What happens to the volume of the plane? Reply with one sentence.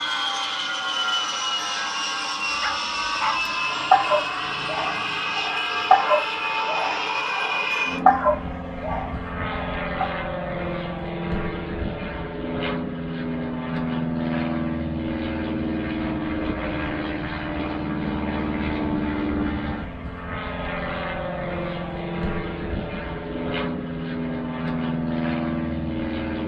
The volume of the plane stays about the same.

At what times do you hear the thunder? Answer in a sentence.
The thunder can't be heard in this clip.